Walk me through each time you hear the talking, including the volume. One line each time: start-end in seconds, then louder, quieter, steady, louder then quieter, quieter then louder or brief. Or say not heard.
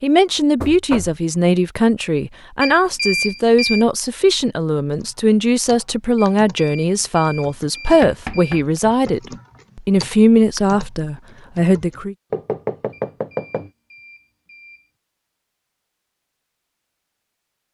0.0-12.2 steady.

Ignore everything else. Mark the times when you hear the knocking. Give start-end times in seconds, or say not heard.
0.6-1.2, 8.0-8.8, 12.3-13.7.